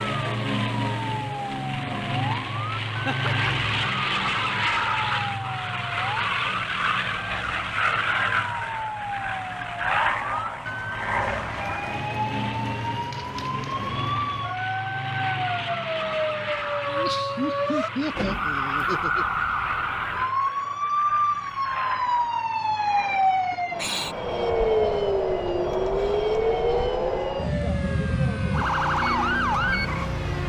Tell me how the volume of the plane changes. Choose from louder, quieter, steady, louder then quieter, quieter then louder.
quieter.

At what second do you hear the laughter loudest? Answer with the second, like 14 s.
18 s.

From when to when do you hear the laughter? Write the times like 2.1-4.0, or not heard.
3.0-3.7, 16.9-19.2.